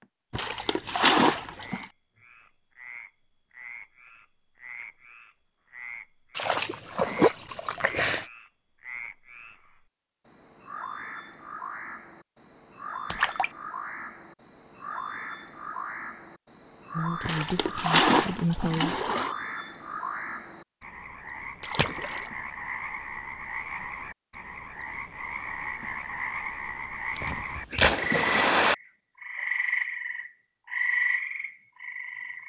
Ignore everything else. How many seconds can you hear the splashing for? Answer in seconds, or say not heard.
8 s.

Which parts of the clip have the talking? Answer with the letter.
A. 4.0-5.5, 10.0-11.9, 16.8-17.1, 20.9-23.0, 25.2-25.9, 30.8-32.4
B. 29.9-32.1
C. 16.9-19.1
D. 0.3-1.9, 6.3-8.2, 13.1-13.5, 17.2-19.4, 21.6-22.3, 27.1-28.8
C.